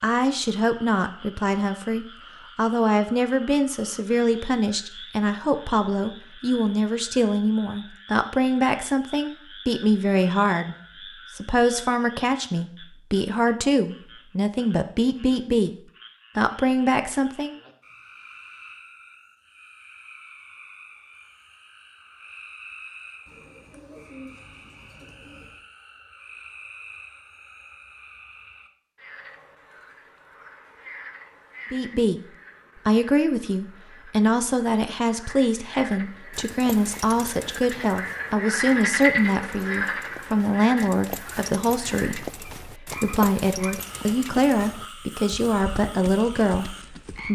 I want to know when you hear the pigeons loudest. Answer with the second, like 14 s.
24 s.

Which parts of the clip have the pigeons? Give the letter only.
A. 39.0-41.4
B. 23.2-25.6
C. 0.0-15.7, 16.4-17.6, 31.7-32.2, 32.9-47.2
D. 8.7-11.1
B.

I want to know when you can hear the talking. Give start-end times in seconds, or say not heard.
0.0-15.7, 16.4-17.6, 31.7-32.2, 32.9-47.2.